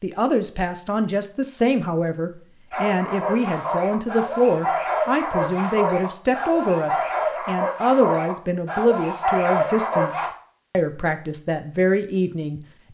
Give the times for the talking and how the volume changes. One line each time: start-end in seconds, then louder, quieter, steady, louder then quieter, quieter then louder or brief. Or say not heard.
0.0-12.6 steady.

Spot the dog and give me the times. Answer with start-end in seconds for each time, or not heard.
2.7-10.3.